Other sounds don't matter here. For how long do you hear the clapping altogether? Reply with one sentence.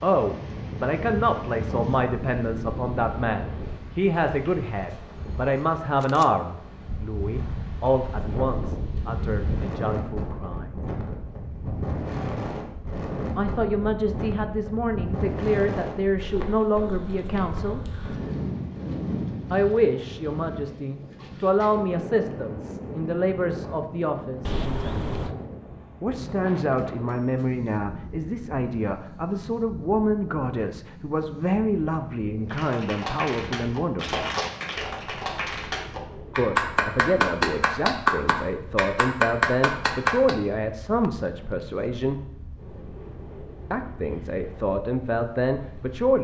You can hear the clapping for 8 seconds altogether.